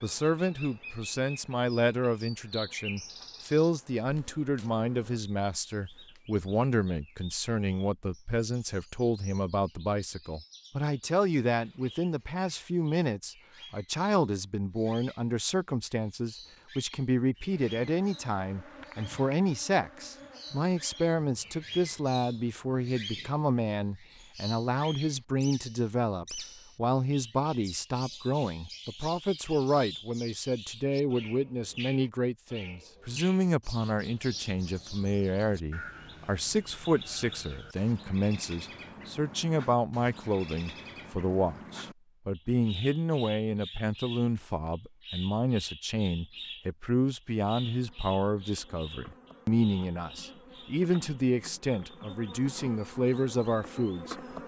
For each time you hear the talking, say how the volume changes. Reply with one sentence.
You can hear the talking from 0.0 to 54.1 s, at a steady volume.